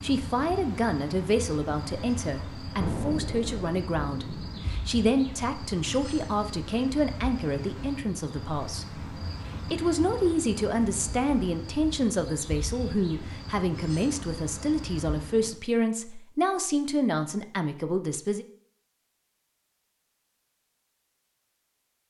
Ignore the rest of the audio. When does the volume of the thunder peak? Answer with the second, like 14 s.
3 s.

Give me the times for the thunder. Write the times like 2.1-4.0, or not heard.
2.8-4.8.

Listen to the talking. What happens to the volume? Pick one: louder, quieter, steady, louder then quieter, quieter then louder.
steady.